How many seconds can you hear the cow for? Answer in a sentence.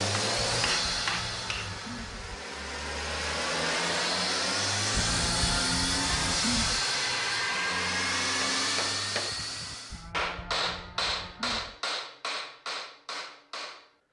The cow can be heard for 6 seconds in total.